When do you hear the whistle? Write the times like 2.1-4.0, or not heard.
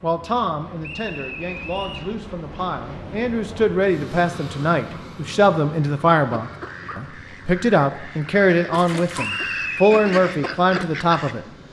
0.8-2.1, 9.2-10.2.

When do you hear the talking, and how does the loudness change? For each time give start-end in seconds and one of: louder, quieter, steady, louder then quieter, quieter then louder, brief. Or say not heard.
0.0-11.5 louder.